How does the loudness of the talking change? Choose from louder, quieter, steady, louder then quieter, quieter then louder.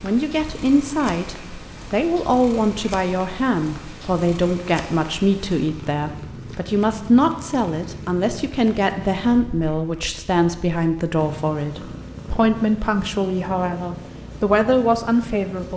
steady.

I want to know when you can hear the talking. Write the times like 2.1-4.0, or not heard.
0.0-15.7.